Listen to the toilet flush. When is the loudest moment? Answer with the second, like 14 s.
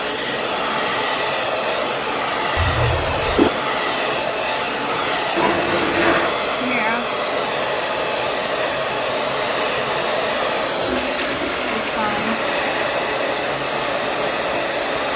6 s.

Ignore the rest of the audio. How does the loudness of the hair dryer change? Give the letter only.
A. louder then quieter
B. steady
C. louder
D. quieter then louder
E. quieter
B.